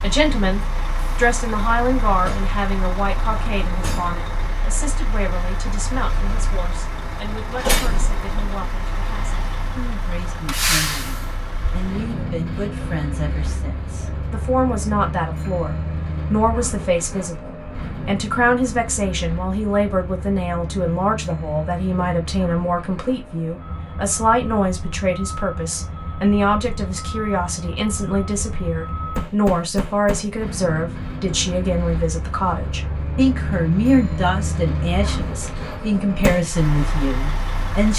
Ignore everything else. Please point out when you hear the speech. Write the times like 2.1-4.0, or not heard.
0.0-37.9.